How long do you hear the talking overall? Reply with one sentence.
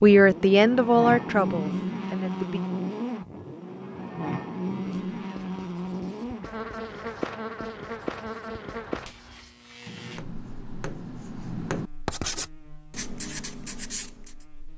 You can hear the talking for 3 seconds altogether.